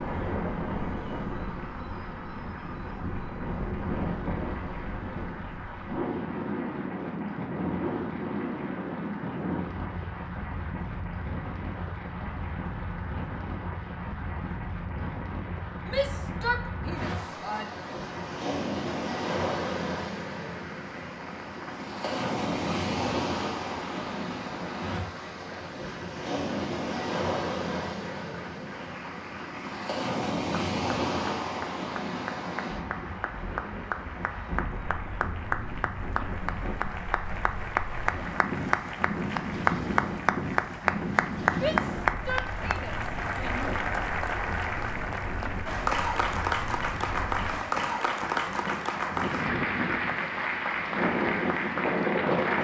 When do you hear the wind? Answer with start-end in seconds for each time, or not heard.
0.0-52.5.